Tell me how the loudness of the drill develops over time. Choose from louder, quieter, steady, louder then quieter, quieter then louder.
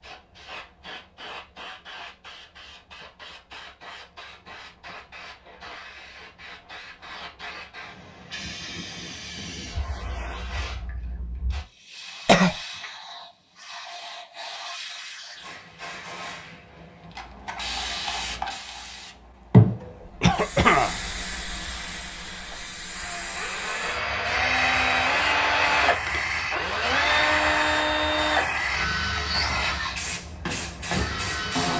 louder then quieter.